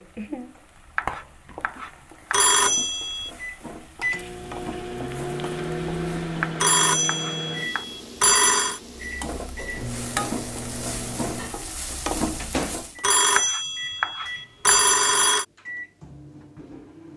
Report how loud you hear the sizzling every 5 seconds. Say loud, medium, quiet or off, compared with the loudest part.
medium, medium, loud, off.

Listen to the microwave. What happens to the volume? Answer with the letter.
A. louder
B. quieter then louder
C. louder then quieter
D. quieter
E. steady
D.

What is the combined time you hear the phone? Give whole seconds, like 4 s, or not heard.
6 s.